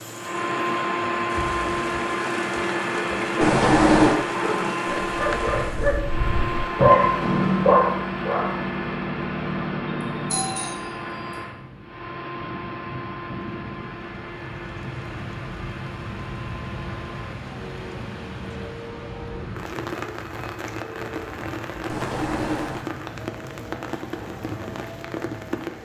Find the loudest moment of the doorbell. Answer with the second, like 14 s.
4 s.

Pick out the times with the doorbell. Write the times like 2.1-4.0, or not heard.
3.4-4.2, 10.3-10.9, 21.9-22.9.